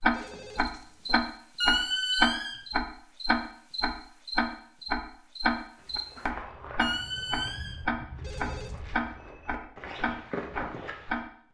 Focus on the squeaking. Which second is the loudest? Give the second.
2 s.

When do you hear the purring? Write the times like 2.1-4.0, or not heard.
not heard.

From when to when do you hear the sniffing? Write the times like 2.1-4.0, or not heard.
not heard.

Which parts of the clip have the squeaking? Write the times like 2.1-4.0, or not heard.
1.6-2.5, 6.8-7.8.